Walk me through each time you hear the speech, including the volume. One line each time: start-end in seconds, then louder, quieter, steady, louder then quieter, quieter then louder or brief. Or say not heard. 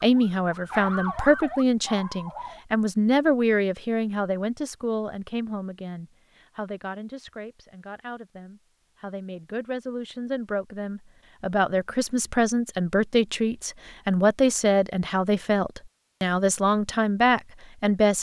0.0-18.1 quieter then louder.